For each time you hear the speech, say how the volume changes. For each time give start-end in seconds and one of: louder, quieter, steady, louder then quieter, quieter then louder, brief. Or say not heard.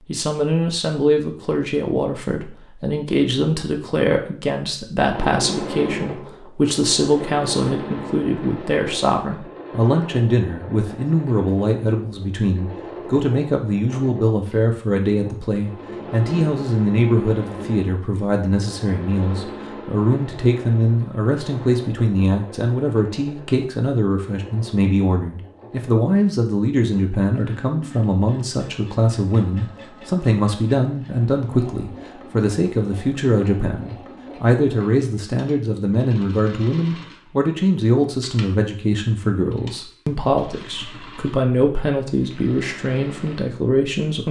0.1-44.2 steady.